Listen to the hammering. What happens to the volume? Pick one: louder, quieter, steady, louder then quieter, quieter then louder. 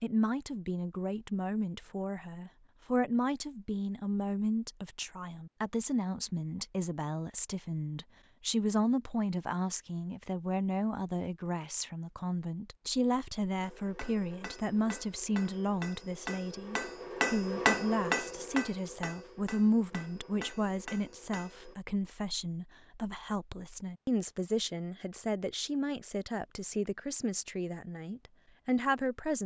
louder then quieter.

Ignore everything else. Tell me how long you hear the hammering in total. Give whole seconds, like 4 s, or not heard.
8 s.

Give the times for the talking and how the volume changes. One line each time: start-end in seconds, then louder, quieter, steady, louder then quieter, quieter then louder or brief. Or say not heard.
0.0-29.4 steady.